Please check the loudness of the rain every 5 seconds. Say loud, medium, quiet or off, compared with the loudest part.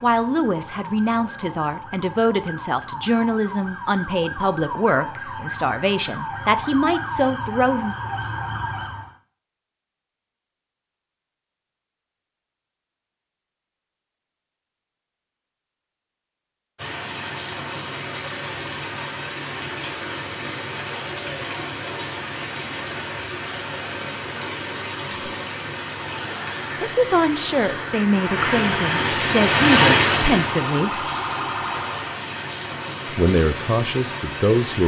off, off, off, medium, medium, loud, medium.